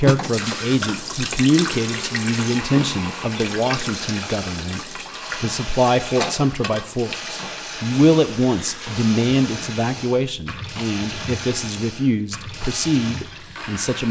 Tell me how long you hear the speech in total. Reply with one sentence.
You can hear the speech for 14 seconds altogether.